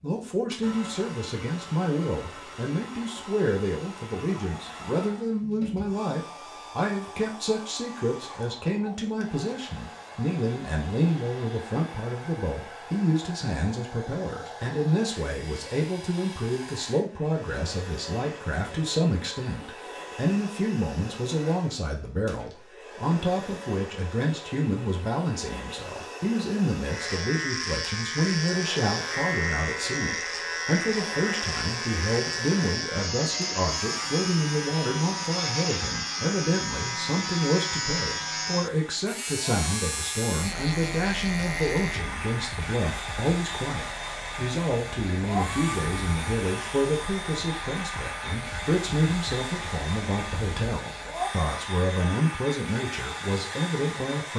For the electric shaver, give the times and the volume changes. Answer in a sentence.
The electric shaver can be heard from 26.9 to 51.4 s, getting quieter.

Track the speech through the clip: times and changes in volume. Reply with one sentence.
You can hear the speech from 0.0 to 54.3 s, at a steady volume.